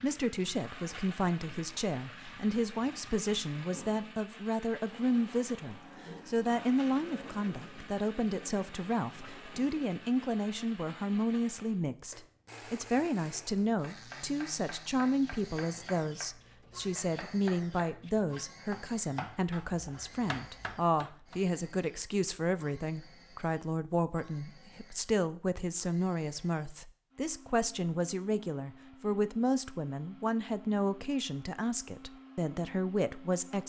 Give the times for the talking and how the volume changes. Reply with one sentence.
You can hear the talking from 0.0 to 33.6 s, at a steady volume.